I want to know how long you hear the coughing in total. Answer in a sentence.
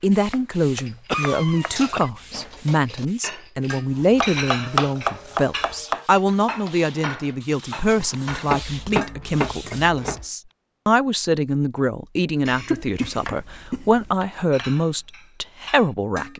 The coughing can be heard for 3 seconds in total.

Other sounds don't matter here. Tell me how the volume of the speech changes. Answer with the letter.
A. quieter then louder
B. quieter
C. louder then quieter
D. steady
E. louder
D.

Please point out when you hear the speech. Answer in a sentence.
The speech can be heard from 0.0 to 16.3 s.